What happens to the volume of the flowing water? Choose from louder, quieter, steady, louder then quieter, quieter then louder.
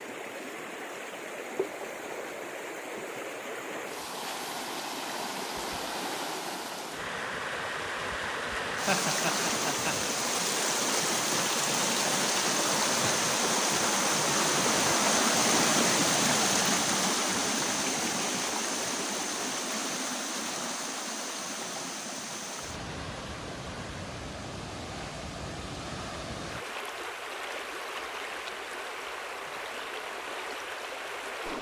louder then quieter.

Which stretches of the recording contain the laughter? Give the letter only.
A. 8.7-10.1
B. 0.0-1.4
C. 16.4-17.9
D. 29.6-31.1
A.